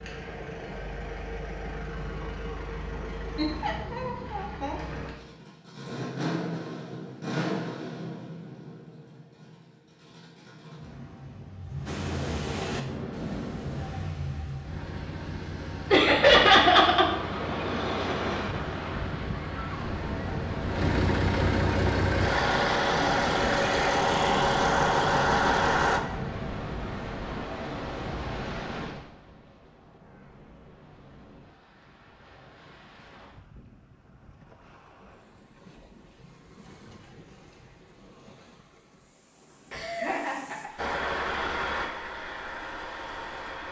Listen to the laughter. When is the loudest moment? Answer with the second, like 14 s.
16 s.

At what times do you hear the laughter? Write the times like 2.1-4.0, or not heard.
3.4-5.1, 15.9-17.1, 39.7-40.9.